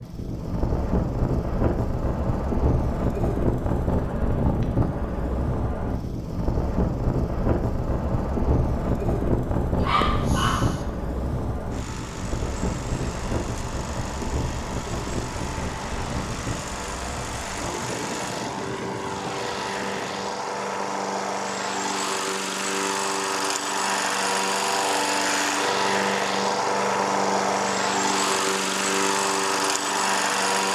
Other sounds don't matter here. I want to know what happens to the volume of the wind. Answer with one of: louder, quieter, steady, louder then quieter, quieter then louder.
quieter.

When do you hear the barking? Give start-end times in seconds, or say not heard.
9.8-10.8.